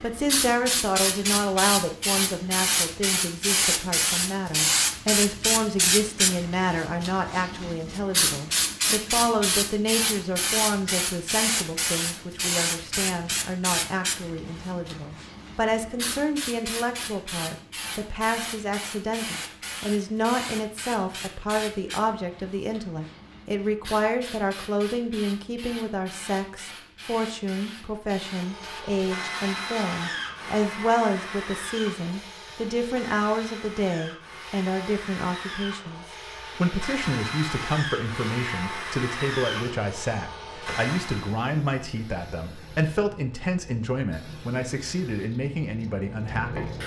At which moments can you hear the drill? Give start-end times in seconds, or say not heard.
28.2-41.4.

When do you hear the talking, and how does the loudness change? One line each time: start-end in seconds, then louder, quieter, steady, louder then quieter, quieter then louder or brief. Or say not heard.
0.0-46.8 steady.